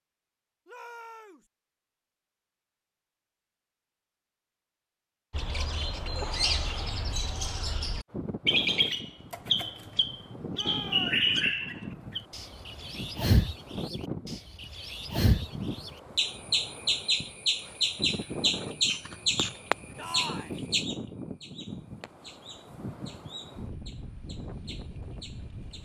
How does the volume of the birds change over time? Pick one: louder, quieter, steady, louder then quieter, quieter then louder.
quieter.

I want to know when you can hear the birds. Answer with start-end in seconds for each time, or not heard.
5.3-25.8.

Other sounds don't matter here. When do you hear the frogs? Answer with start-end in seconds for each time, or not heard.
not heard.